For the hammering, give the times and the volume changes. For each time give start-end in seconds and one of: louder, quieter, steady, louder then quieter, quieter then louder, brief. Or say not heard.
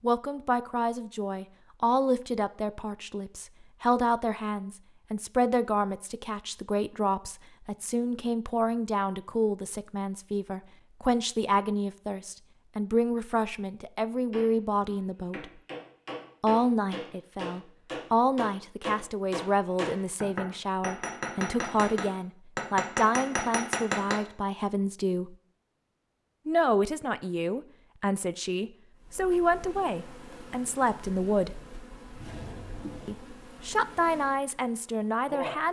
14.3-24.2 louder.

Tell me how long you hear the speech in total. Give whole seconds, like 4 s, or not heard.
32 s.